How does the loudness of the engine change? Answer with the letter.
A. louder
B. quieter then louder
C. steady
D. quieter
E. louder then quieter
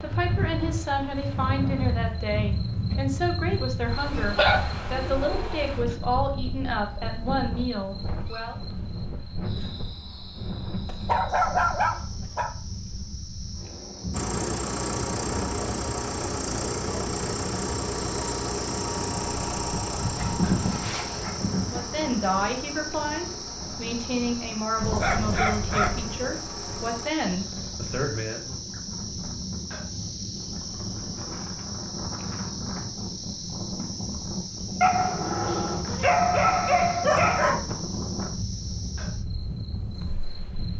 D.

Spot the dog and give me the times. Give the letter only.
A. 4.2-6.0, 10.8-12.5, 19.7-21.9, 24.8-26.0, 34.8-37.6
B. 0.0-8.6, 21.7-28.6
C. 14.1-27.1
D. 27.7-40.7
A.